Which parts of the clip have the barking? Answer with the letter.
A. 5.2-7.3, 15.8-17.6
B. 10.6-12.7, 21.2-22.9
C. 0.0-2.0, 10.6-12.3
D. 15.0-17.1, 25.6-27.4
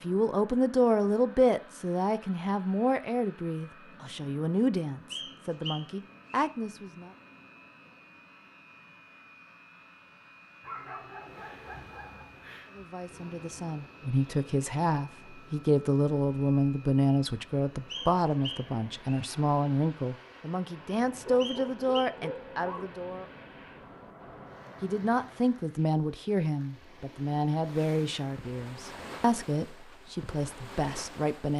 B.